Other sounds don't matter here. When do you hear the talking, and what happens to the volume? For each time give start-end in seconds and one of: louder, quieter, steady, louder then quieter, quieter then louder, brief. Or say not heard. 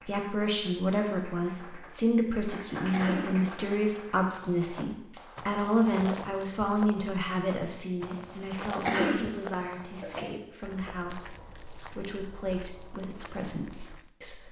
0.0-14.4 quieter.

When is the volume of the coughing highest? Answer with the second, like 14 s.
9 s.